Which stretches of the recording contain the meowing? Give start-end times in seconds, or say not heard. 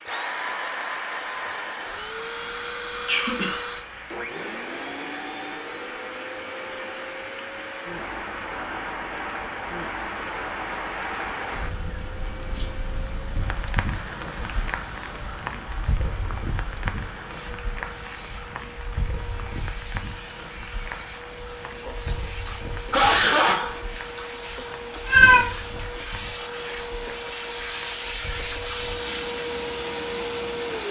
25.1-25.6.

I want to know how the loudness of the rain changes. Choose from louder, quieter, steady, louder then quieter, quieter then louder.
louder then quieter.